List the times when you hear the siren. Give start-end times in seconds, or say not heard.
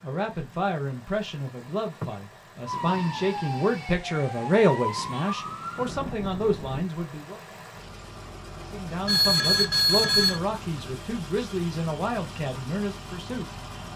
2.6-6.9.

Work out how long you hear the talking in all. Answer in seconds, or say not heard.
12 s.